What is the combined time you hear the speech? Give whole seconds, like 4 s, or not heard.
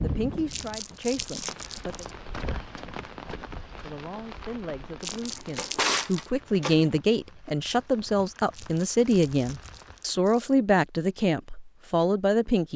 11 s.